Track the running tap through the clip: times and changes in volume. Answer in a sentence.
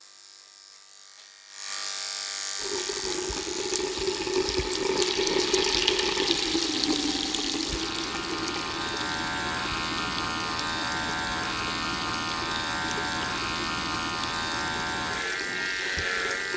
The running tap can be heard from 2.5 to 16.5 s, getting quieter.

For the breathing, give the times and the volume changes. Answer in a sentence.
The breathing can't be heard in this clip.